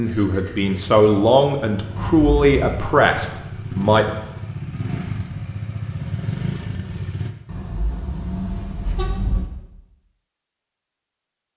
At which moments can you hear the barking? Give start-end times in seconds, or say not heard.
not heard.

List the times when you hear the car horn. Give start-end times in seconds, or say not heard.
1.9-2.8, 7.5-9.4.